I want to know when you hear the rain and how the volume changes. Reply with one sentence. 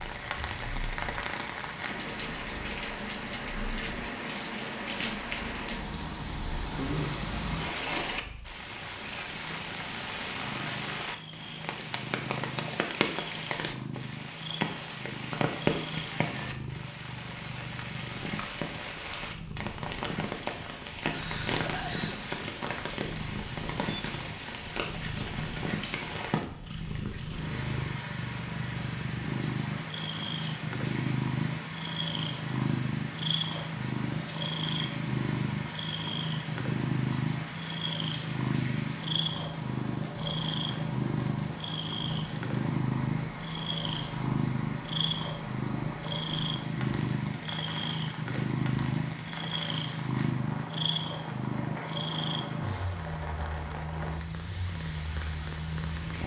The rain can be heard from 0.0 to 56.2 s, getting quieter.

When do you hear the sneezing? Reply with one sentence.
The sneezing can be heard from 21.1 to 22.3 s.